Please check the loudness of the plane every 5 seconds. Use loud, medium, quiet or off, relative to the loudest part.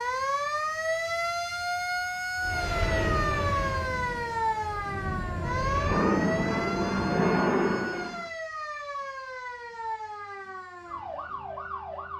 medium, loud, off.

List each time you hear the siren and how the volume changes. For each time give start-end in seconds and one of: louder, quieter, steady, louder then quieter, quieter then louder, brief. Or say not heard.
0.0-12.1 quieter.